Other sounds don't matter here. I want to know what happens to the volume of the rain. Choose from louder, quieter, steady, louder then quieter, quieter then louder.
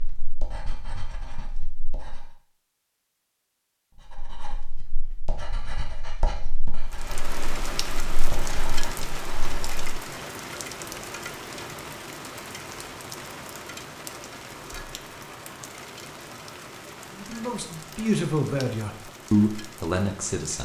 quieter.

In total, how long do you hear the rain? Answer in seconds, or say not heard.
14 s.